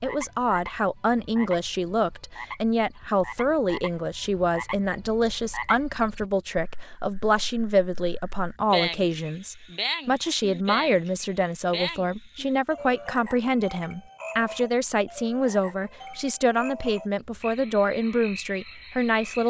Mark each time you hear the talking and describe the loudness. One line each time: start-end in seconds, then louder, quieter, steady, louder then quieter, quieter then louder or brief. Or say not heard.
0.0-19.4 steady.